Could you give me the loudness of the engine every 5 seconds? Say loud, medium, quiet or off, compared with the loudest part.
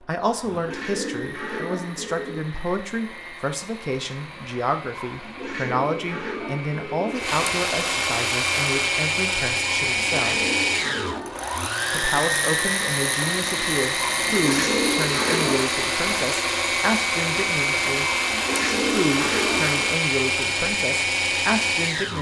quiet, loud, loud, loud, loud.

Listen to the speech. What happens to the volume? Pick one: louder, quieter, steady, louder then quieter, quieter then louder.
steady.